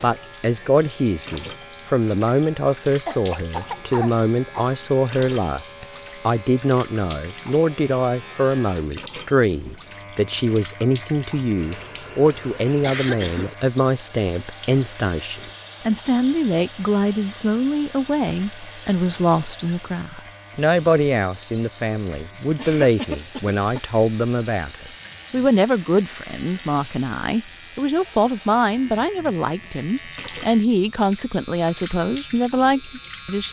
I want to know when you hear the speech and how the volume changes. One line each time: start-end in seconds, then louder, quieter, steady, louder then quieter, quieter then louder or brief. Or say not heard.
0.0-33.4 steady.